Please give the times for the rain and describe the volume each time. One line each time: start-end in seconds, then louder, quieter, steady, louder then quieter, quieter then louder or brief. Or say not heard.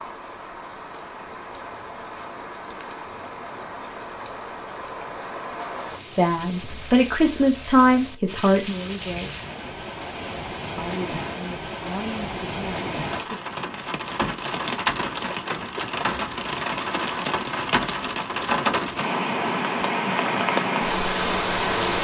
0.0-21.9 louder.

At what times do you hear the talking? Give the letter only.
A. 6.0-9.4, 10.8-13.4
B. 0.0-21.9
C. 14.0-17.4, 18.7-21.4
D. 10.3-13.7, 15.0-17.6
A.